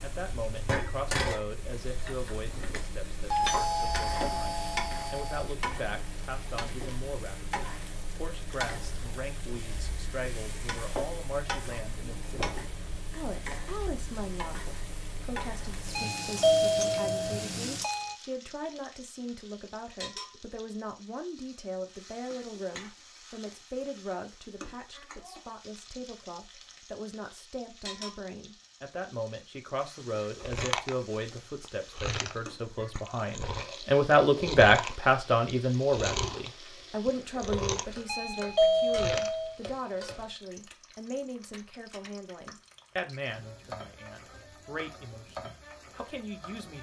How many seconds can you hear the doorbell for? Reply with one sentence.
You can hear the doorbell for 6 seconds altogether.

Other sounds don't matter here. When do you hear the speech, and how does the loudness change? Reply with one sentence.
You can hear the speech from 0.0 to 46.7 s, getting louder then quieter.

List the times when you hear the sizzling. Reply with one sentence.
You can hear the sizzling from 0.0 to 46.7 s.